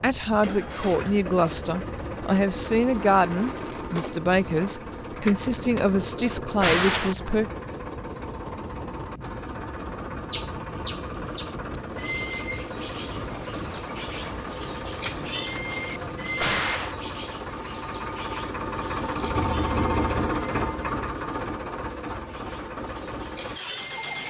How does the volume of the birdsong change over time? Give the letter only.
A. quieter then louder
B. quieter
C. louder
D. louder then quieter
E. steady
B.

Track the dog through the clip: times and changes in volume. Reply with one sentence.
You can't hear the dog here.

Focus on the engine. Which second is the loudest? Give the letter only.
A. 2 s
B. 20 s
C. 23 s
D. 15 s
B.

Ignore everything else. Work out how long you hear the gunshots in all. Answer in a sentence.
You can hear the gunshots for 4 seconds altogether.